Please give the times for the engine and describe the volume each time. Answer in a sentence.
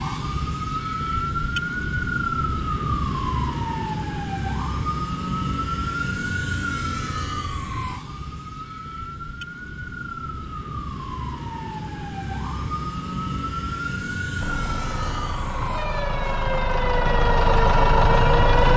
You can hear the engine from 14.3 to 18.7 s, getting louder.